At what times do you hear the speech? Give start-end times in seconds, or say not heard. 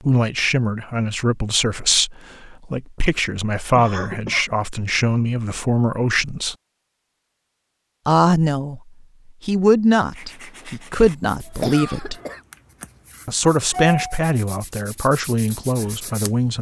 0.1-6.5, 8.1-8.8, 9.4-12.2, 13.2-16.5.